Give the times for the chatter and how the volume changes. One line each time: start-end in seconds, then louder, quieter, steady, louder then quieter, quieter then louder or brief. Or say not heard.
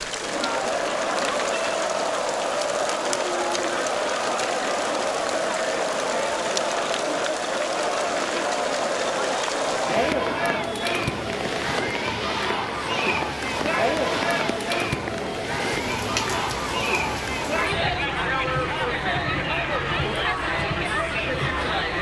0.0-21.9 steady.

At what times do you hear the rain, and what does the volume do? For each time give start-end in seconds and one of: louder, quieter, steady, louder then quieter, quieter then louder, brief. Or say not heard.
0.0-21.9 steady.